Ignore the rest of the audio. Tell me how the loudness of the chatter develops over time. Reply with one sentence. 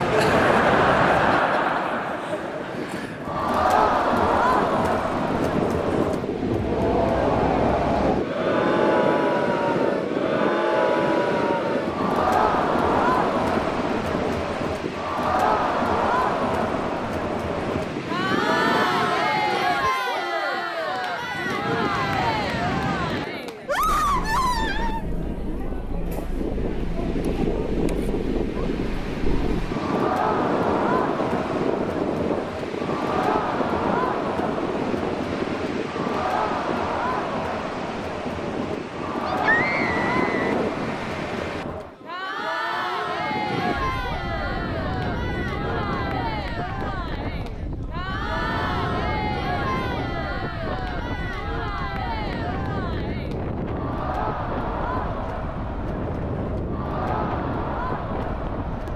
The volume of the chatter goes down.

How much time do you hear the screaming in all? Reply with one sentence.
You can hear the screaming for 3 seconds altogether.